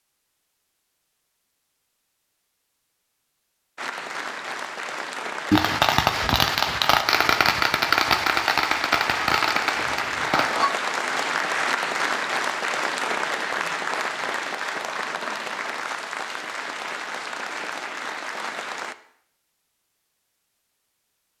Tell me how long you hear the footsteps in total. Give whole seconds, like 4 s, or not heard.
not heard.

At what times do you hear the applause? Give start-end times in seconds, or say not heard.
3.8-18.9.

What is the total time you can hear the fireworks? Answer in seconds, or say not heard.
5 s.